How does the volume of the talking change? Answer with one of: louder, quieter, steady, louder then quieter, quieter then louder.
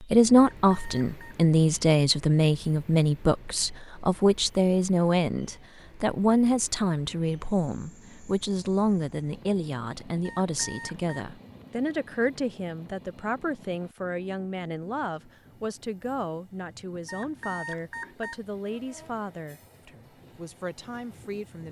quieter.